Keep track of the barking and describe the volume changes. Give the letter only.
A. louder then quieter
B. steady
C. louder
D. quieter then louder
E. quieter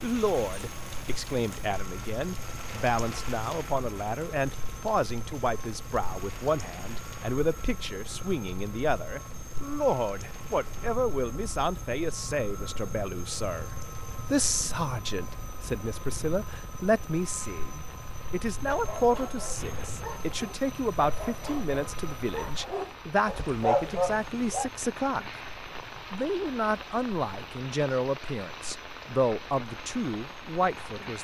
C.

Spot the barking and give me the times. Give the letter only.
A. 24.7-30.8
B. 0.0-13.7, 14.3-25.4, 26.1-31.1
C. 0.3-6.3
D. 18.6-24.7
D.